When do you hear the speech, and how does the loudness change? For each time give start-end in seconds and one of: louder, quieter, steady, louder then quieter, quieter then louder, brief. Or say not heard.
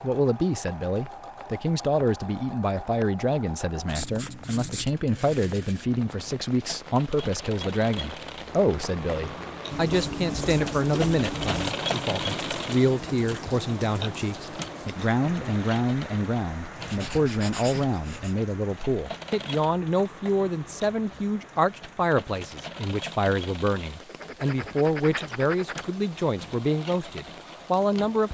0.0-28.2 steady.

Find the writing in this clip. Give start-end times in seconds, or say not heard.
3.9-4.9, 9.7-11.7, 16.8-18.4, 24.0-25.9.